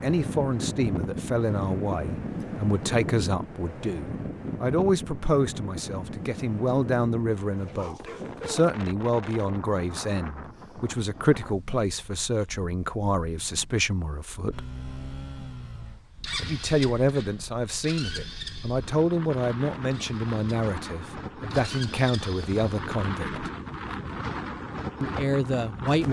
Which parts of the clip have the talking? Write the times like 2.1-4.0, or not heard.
0.0-14.7, 16.4-23.5, 25.0-26.0.